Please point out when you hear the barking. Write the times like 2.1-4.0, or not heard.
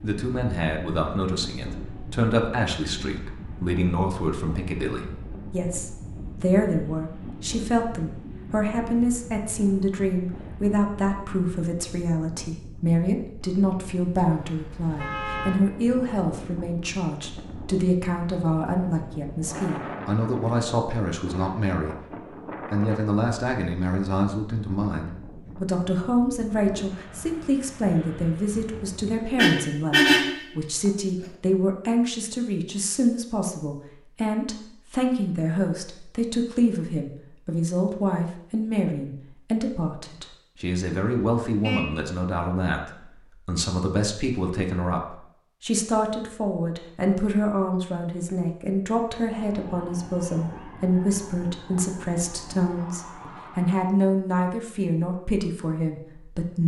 not heard.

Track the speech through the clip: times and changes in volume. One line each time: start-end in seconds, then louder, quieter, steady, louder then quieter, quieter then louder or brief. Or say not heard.
0.0-21.9 steady
22.7-56.6 steady.